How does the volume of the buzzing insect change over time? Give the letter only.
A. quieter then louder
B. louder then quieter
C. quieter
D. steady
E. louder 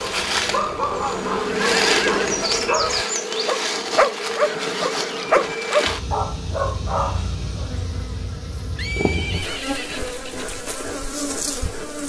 C.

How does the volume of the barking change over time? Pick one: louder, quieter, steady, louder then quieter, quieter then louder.
louder then quieter.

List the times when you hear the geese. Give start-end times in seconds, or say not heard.
not heard.